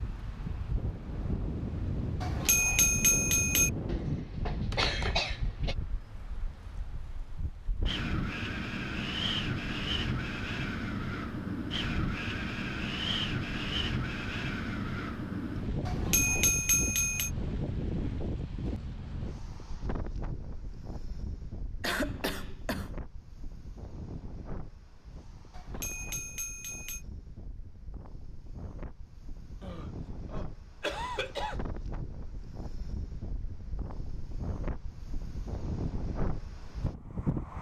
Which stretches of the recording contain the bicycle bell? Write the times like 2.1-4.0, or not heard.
2.2-3.7, 15.8-17.3, 25.5-27.0.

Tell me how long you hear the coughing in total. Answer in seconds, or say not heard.
5 s.